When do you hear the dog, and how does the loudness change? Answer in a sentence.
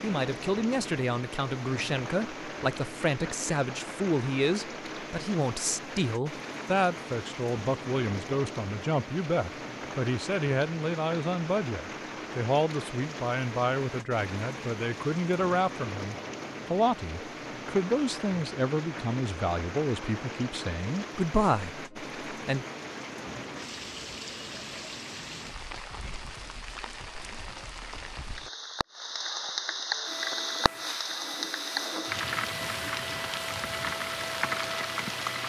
The dog can't be heard in this clip.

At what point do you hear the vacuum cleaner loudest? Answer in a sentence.
The loudest moment of the vacuum cleaner is at 34 seconds.